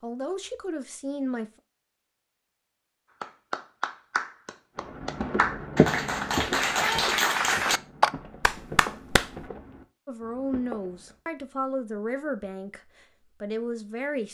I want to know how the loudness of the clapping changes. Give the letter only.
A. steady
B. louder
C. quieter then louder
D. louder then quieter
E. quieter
B.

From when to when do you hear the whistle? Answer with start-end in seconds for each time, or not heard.
not heard.